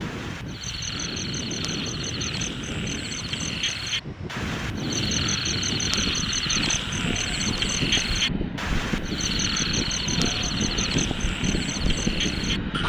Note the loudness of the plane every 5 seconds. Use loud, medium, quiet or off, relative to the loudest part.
medium, loud, loud.